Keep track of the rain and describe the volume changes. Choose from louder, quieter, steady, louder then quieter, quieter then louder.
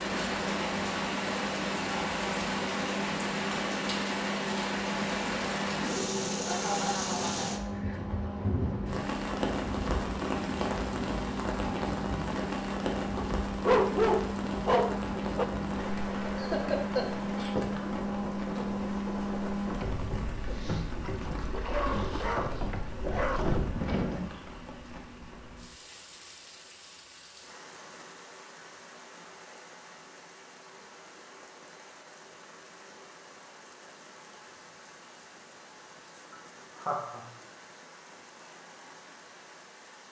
quieter.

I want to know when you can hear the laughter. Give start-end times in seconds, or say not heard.
6.5-8.0, 16.4-17.1, 36.3-37.2.